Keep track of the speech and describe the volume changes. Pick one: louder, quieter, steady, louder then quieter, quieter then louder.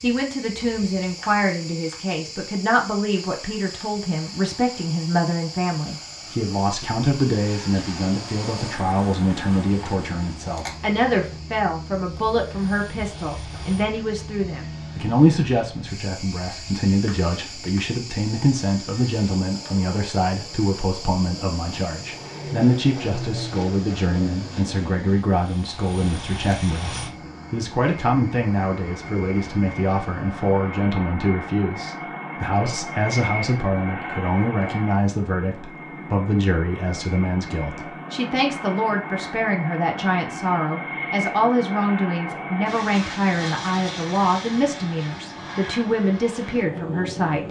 steady.